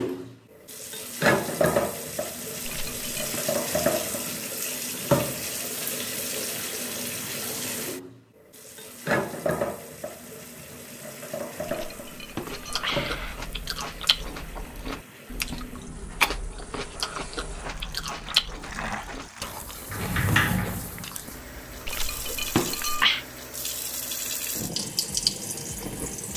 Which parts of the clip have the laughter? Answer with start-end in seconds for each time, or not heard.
not heard.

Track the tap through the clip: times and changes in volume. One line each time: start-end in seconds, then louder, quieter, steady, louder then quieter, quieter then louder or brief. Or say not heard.
0.0-26.3 quieter then louder.